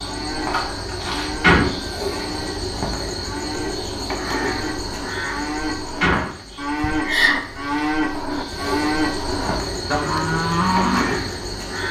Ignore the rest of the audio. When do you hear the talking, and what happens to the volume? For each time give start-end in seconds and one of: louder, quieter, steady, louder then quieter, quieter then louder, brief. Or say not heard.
not heard.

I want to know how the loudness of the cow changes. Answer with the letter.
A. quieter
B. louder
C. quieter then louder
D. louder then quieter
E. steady
B.